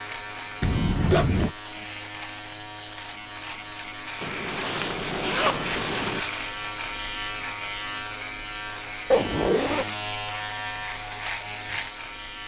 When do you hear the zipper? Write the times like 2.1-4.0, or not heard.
0.6-1.5, 4.2-6.2, 9.1-9.8.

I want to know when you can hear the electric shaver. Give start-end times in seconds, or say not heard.
0.0-12.4.